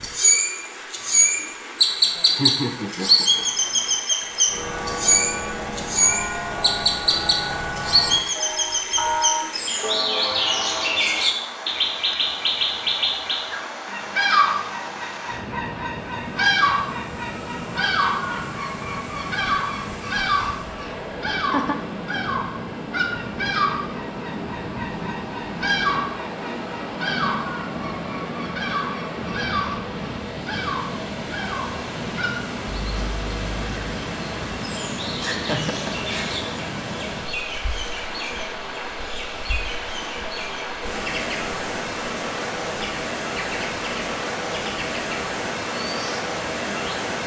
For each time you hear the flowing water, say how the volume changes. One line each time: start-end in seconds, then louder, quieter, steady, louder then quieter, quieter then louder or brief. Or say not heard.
0.0-47.2 louder.